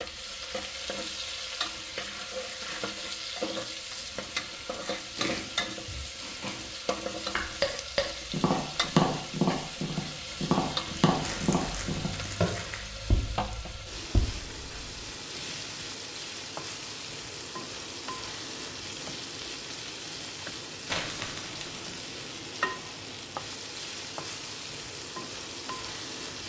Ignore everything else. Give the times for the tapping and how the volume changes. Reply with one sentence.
You can hear the tapping from 7.3 to 15.0 s, getting quieter.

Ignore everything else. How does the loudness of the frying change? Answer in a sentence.
The volume of the frying stays about the same.